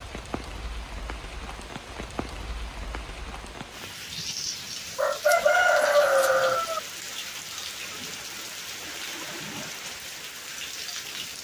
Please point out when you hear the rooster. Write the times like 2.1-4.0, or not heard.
5.0-6.8.